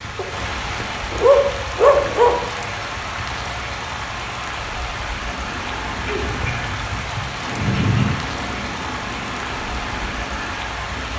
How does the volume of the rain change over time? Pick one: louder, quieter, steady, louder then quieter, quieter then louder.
steady.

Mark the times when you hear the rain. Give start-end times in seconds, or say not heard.
0.0-11.1.